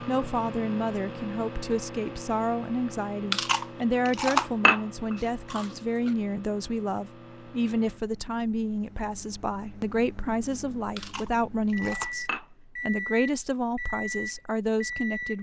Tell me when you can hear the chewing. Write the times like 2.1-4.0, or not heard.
3.3-6.1, 10.9-12.4.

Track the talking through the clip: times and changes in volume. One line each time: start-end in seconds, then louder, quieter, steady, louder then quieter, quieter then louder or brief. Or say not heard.
0.1-15.3 steady.